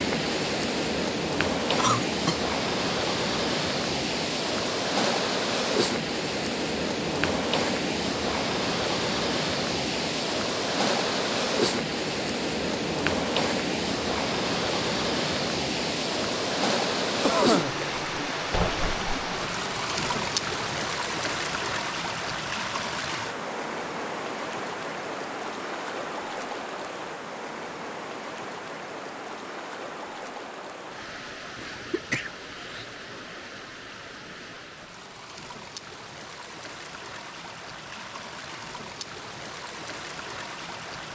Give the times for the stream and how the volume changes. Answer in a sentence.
The stream can be heard from 0.0 to 41.1 s, getting quieter.